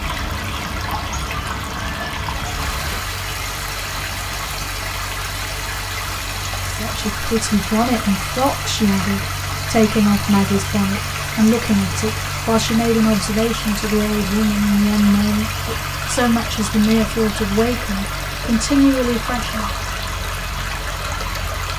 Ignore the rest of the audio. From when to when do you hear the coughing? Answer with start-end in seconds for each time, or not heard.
not heard.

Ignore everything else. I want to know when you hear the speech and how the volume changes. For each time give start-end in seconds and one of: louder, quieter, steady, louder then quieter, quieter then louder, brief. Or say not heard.
6.7-19.8 steady.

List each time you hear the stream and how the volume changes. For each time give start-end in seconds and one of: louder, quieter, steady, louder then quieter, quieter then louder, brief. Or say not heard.
0.0-21.7 steady.